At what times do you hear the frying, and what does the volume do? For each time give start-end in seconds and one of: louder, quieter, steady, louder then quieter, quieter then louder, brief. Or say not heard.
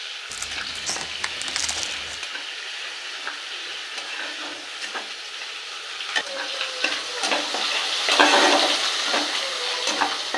0.0-10.3 louder.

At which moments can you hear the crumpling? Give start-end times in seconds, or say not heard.
0.3-2.2.